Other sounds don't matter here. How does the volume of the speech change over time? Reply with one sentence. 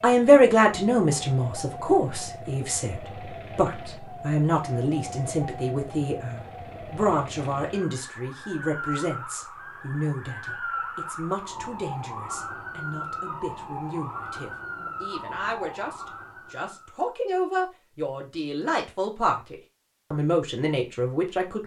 The loudness of the speech goes down, then up.